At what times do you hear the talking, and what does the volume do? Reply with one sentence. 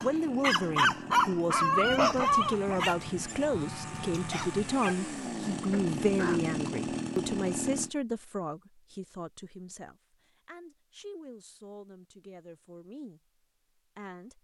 The talking can be heard from 0.0 to 14.3 s, getting quieter.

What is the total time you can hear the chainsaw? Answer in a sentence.
You can hear the chainsaw for 8 seconds altogether.